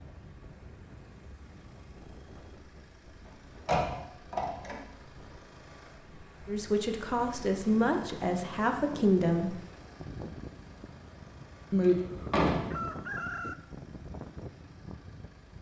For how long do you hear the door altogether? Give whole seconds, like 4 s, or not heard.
2 s.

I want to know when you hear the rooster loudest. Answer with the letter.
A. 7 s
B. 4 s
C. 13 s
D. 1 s
C.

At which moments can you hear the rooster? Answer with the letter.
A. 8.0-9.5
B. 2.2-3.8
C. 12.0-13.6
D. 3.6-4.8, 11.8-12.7
C.